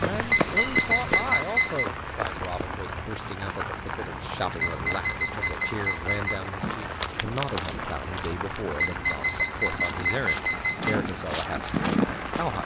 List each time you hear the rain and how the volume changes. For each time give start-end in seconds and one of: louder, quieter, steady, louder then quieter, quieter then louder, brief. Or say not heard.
0.0-12.6 steady.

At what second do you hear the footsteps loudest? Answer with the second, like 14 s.
12 s.